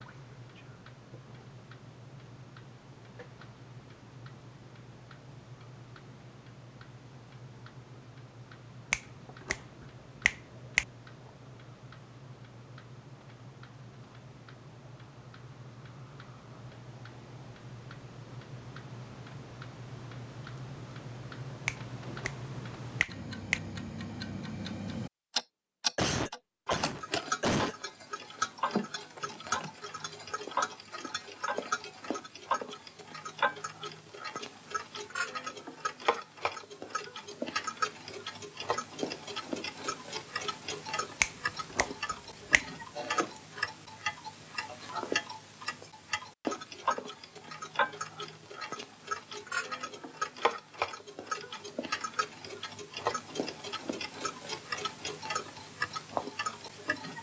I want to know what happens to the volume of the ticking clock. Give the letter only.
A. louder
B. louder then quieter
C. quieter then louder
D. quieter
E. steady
A.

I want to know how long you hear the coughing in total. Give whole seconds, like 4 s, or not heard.
2 s.